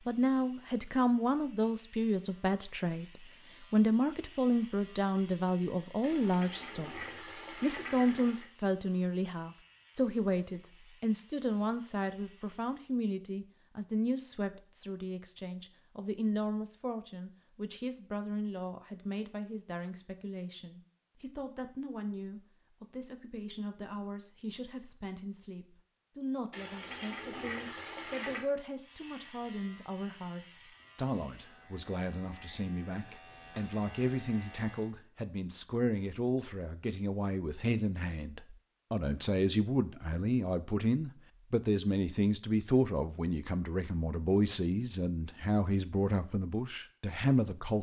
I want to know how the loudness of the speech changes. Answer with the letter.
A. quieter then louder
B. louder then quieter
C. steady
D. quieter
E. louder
A.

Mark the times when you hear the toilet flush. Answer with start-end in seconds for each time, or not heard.
6.0-8.5, 26.5-28.4.